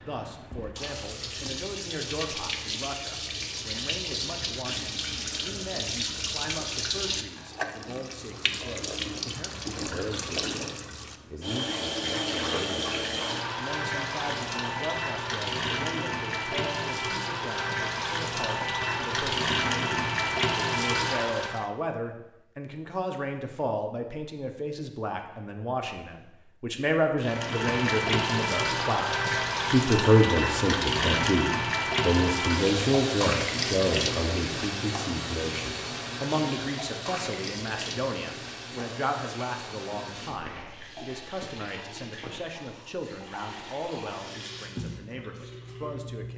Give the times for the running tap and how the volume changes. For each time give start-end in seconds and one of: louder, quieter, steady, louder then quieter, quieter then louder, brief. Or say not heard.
0.0-21.7 louder
27.2-46.3 quieter.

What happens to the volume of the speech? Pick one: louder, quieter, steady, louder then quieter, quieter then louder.
louder then quieter.